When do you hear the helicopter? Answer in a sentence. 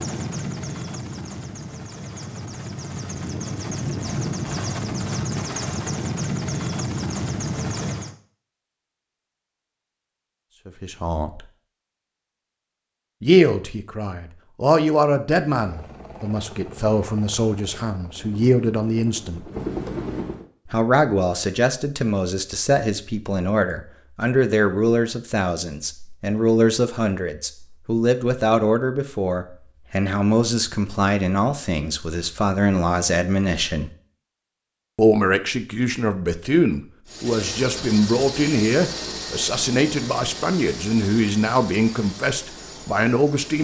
You can hear the helicopter from 0.0 to 8.2 s, from 15.5 to 20.4 s and from 37.0 to 43.5 s.